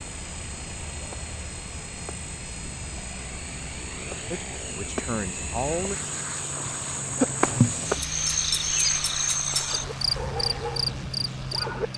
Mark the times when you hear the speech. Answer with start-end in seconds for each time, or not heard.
4.3-6.0.